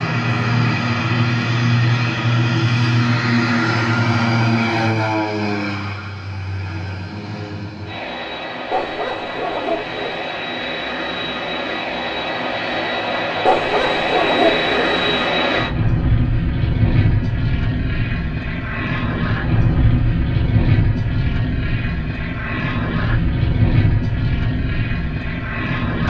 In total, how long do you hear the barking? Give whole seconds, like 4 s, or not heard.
3 s.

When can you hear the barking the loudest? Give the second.
14 s.